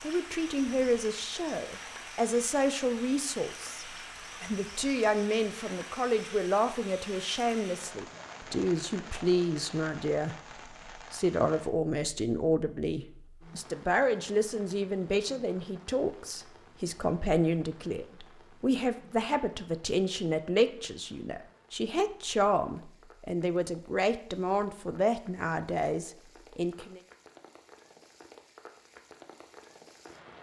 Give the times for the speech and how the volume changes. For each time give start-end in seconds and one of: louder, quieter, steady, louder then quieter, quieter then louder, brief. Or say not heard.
0.0-27.0 steady.